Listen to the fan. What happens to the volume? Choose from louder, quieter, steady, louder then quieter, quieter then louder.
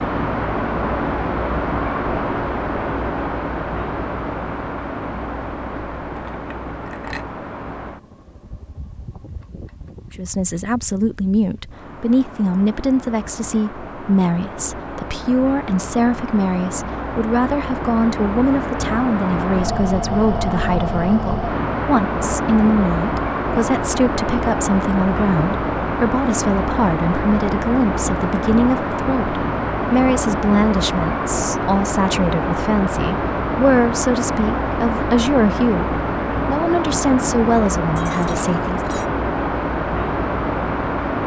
quieter then louder.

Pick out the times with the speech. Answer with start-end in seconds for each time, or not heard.
10.2-38.8.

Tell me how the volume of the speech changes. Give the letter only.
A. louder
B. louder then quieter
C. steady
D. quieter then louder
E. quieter
C.